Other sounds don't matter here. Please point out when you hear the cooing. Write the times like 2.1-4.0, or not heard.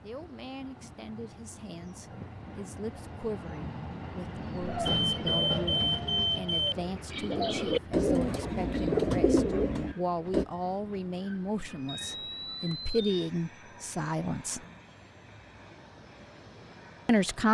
4.5-10.4.